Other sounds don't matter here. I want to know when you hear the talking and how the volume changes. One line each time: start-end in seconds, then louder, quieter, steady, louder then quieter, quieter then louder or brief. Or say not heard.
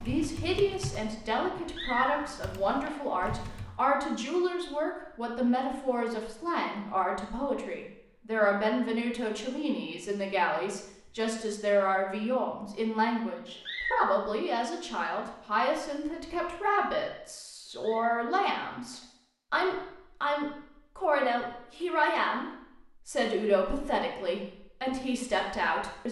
0.0-26.0 steady.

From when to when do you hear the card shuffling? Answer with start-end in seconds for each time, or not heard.
not heard.